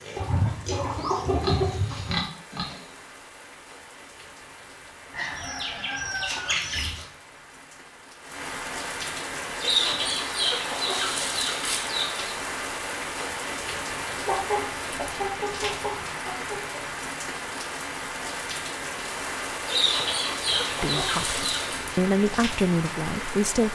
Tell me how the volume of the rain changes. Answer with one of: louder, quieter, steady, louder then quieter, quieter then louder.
louder.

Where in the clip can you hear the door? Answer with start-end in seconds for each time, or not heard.
not heard.